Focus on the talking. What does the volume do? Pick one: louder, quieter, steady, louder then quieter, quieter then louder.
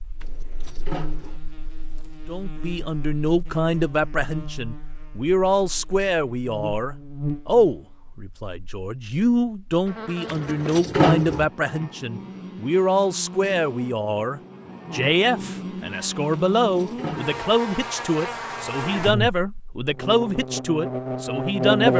steady.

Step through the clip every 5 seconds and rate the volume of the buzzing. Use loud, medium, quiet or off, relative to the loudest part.
quiet, quiet, quiet, medium, loud.